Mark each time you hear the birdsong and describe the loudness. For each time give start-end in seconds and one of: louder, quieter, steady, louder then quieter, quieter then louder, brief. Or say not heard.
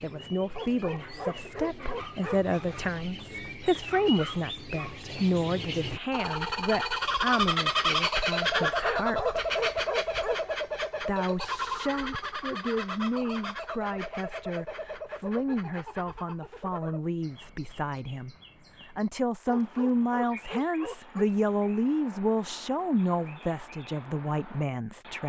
0.0-25.2 louder then quieter.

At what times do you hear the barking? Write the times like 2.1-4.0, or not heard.
0.5-2.5, 8.5-10.5, 19.4-21.2.